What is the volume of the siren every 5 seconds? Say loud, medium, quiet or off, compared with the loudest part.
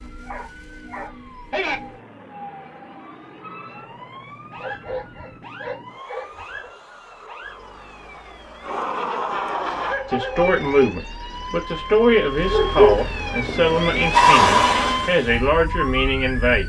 quiet, quiet, loud, medium.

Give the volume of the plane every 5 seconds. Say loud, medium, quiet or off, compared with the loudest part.
quiet, loud, off, off.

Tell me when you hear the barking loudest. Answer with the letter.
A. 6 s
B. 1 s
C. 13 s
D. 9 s
C.